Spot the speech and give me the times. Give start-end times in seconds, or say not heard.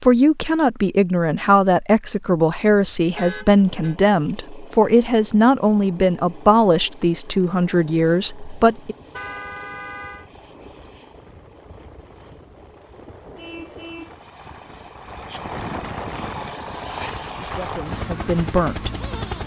0.0-8.9, 17.4-18.9.